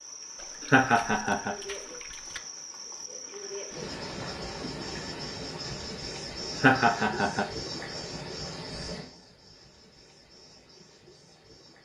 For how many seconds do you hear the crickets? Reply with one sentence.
The crickets can be heard for 12 seconds in total.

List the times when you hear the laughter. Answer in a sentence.
The laughter can be heard from 0.7 to 1.6 s and from 6.5 to 7.5 s.